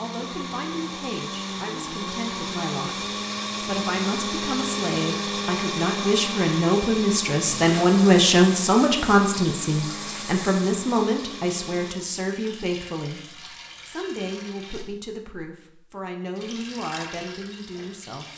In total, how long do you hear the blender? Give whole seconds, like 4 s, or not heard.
12 s.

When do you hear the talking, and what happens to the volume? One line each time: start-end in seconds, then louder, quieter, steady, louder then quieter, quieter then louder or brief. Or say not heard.
0.0-18.3 louder then quieter.